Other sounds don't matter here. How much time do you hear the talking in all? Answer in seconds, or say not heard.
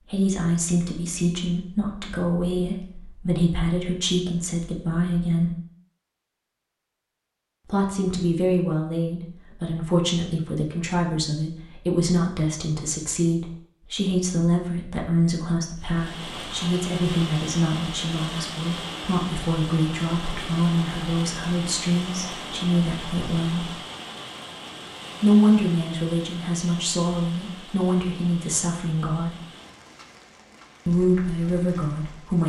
27 s.